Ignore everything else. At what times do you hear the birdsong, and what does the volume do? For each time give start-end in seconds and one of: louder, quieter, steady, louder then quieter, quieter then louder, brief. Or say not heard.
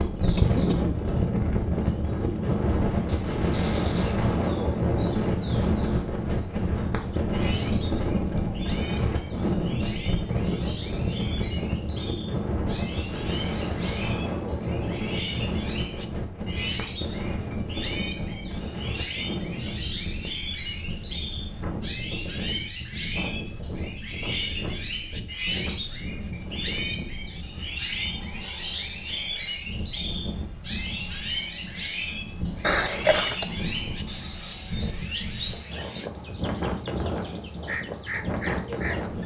0.0-39.2 louder.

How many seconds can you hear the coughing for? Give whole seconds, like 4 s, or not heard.
2 s.